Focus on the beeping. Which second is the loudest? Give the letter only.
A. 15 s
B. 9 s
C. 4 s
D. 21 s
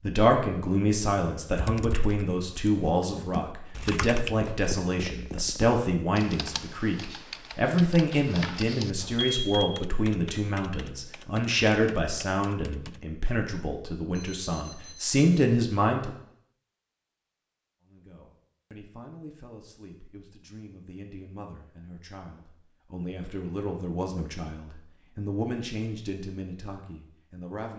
B.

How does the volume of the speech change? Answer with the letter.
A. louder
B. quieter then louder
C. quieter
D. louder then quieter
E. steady
C.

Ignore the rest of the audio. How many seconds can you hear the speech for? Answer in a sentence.
The speech can be heard for 26 seconds in total.